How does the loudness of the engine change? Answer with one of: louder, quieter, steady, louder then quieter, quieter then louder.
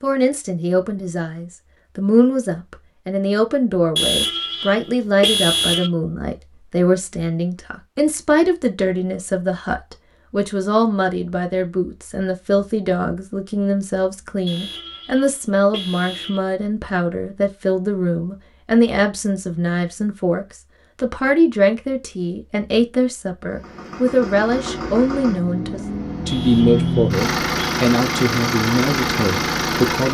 louder.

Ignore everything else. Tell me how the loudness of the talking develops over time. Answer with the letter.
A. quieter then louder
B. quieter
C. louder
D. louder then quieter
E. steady
E.